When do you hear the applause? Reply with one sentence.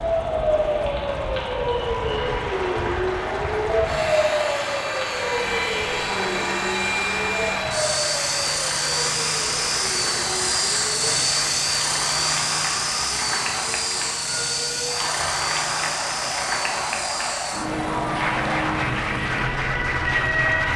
The applause can be heard from 2.0 to 20.7 s.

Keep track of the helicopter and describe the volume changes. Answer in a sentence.
The loudness of the helicopter goes up, then down.